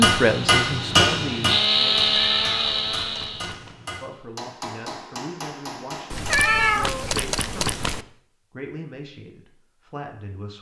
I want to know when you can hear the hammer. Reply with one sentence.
The hammer can be heard from 0.0 to 6.4 s.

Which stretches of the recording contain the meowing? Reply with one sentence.
The meowing can be heard from 2.0 to 3.8 s and from 6.1 to 8.1 s.